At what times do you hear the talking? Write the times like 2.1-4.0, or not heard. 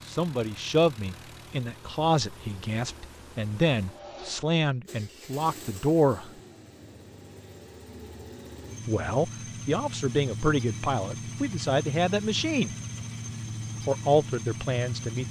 0.1-6.3, 8.8-12.8, 13.8-15.2.